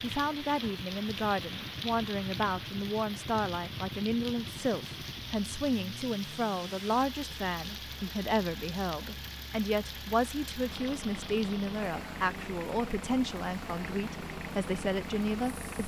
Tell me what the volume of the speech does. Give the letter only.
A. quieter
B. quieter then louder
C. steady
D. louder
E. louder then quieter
C.